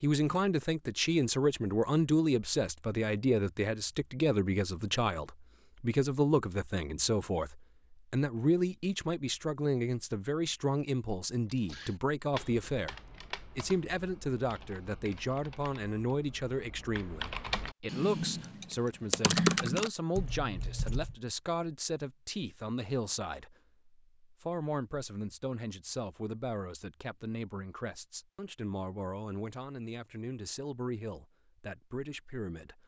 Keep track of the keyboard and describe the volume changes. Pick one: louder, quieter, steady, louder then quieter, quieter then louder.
quieter then louder.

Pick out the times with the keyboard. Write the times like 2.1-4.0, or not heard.
11.4-21.1.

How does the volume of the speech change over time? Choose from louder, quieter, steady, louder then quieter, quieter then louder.
quieter.